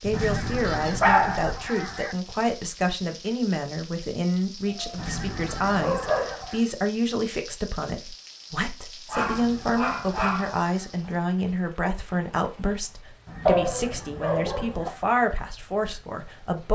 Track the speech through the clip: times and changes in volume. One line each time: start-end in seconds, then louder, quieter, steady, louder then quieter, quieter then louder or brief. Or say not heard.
0.0-16.7 steady.